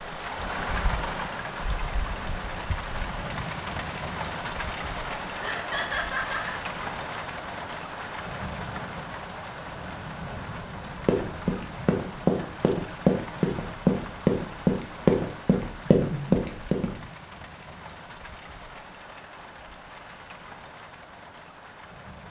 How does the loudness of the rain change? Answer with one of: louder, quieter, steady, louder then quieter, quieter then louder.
quieter.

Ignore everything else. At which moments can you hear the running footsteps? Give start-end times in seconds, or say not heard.
11.1-16.9.